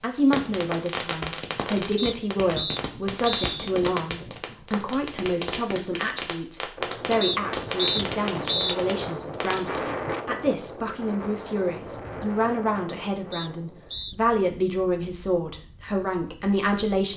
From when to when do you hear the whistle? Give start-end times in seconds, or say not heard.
1.9-3.5, 7.2-8.8, 13.3-14.2.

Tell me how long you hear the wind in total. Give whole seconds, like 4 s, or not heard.
10 s.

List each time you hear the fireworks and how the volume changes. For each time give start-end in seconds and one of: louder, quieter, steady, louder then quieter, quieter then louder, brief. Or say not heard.
0.2-9.9 steady.